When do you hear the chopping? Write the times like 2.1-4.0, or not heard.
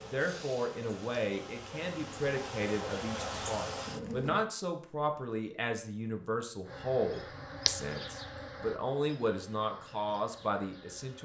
not heard.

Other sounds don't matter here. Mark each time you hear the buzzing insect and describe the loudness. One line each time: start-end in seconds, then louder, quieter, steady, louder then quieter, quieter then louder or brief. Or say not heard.
0.0-4.5 louder
6.7-11.2 quieter.